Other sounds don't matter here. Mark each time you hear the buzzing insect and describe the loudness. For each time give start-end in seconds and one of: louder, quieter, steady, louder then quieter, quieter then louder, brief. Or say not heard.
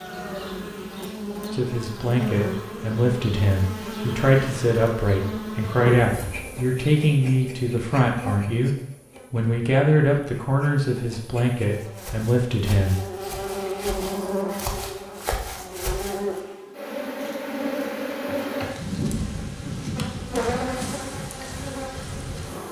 0.0-22.6 quieter then louder.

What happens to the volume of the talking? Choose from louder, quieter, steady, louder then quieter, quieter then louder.
steady.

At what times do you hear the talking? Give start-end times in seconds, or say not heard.
1.5-13.0.